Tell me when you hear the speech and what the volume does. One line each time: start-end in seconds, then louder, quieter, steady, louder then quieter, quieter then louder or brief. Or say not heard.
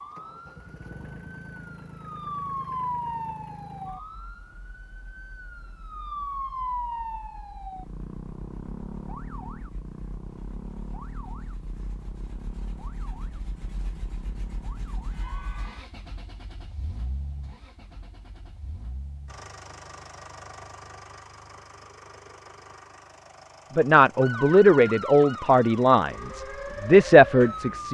23.8-27.9 quieter then louder.